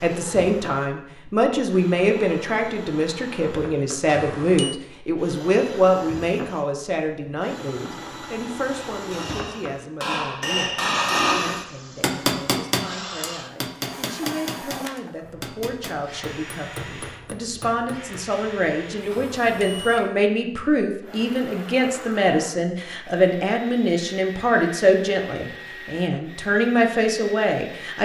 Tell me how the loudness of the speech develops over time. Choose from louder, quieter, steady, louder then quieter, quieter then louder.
quieter then louder.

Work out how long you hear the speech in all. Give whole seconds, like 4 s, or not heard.
28 s.